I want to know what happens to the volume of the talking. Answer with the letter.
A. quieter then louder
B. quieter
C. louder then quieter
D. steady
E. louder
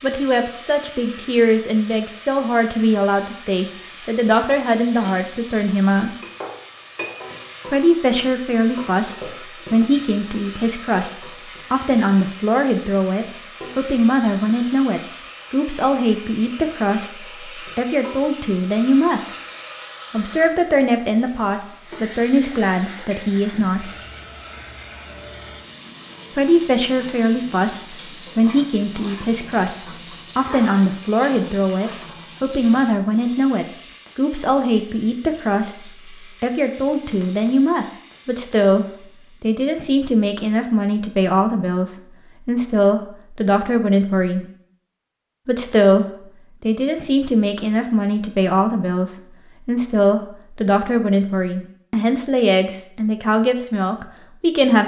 D.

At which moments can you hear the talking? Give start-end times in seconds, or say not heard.
0.0-6.1, 7.7-19.3, 20.1-23.9, 26.4-44.5, 45.5-54.8.